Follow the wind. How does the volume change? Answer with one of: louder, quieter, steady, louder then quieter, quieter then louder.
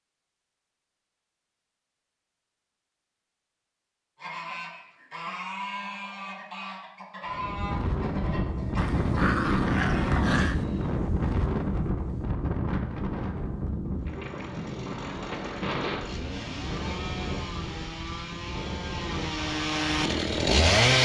quieter.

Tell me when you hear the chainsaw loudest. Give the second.
21 s.